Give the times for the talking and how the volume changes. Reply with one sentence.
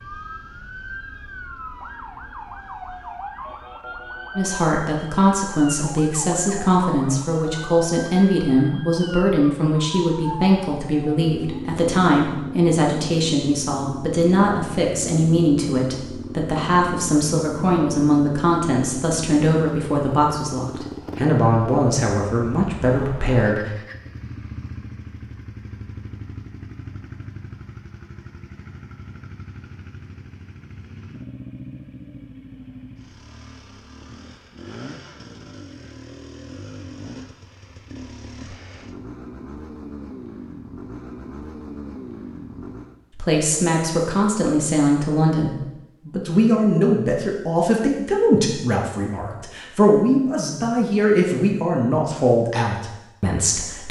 The talking can be heard from 4.3 to 23.7 s, at a steady volume; and from 43.1 to 53.8 s, at a steady volume.